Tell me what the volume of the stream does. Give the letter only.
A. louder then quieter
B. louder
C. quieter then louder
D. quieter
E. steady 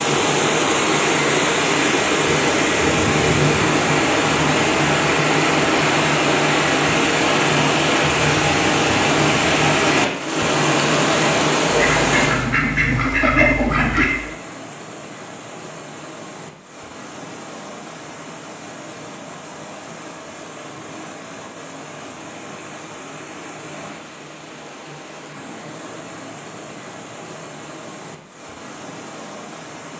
D.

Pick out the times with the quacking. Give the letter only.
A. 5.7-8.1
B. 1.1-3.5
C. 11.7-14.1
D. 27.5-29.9
C.